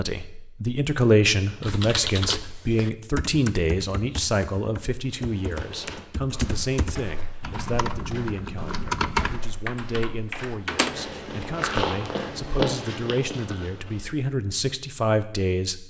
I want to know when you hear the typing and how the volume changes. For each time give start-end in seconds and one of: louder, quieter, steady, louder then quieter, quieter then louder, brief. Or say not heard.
1.6-10.9 quieter then louder.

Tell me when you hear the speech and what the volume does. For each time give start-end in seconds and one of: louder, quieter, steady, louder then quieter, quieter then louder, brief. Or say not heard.
0.0-15.8 quieter then louder.